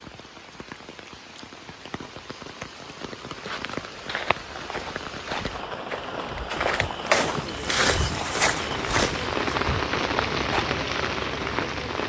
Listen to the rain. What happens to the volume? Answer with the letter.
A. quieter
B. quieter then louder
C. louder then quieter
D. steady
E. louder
E.